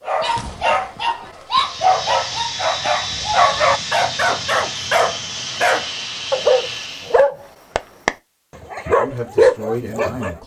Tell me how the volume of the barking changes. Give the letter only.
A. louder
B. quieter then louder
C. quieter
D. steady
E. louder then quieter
D.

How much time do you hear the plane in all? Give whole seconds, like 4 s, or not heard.
6 s.